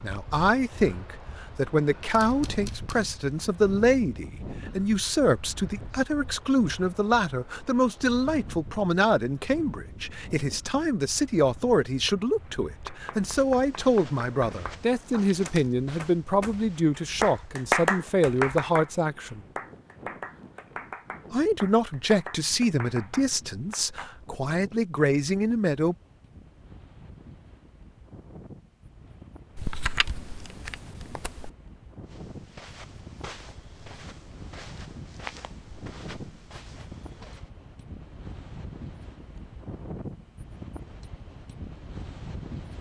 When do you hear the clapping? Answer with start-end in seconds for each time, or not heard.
12.4-24.1.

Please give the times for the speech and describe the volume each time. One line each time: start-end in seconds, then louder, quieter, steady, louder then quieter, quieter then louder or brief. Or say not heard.
0.0-19.4 steady
21.3-25.9 quieter then louder.